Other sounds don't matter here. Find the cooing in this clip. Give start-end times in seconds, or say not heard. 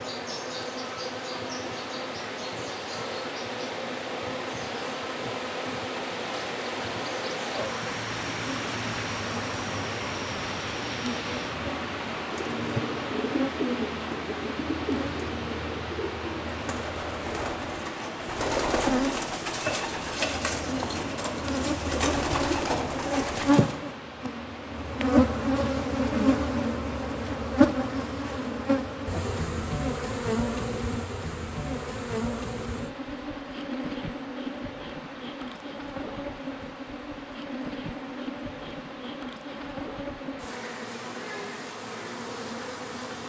12.2-23.8.